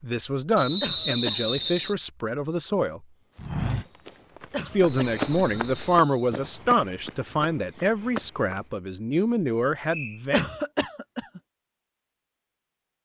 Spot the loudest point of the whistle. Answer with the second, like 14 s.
1 s.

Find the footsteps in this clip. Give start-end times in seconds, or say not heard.
3.4-8.7.